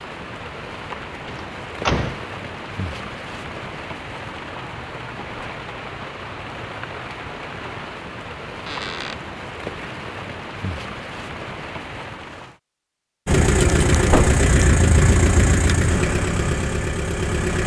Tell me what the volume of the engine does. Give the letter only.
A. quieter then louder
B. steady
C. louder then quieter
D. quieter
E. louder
D.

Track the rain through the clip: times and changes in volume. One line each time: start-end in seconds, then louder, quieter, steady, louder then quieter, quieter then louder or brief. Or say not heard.
0.0-12.6 steady.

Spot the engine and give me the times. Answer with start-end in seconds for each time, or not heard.
13.2-17.6.